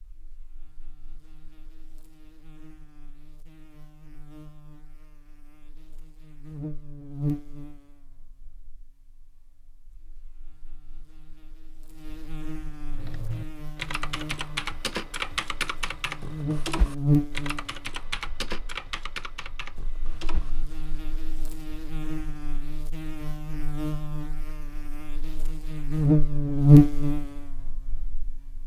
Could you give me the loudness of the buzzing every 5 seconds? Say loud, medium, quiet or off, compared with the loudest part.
quiet, quiet, quiet, medium, quiet, loud.